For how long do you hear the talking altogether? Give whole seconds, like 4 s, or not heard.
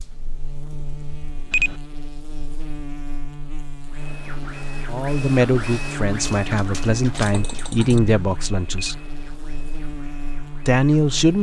5 s.